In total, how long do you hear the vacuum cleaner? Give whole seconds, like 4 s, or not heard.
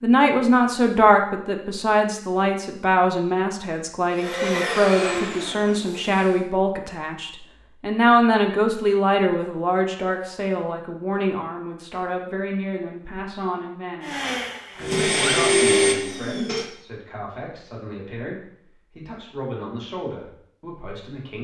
5 s.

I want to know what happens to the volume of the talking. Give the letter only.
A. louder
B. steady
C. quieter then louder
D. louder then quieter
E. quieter
E.